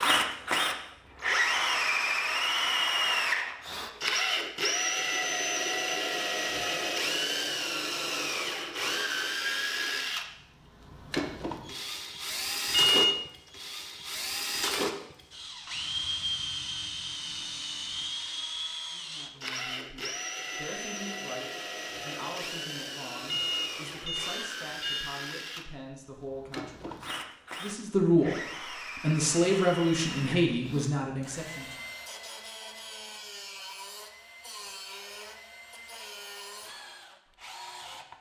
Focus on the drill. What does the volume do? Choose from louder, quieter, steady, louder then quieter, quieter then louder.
quieter.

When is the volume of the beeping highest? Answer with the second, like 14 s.
13 s.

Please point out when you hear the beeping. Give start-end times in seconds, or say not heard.
12.7-13.2, 23.2-25.1.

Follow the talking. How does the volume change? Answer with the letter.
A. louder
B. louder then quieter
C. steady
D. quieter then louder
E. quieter
A.